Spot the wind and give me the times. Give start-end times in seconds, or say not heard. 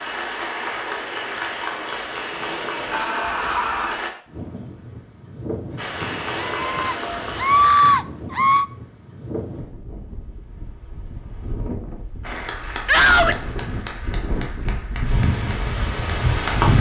4.2-16.7.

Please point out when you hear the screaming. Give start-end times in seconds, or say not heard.
2.9-4.0, 6.5-8.7, 12.8-13.4.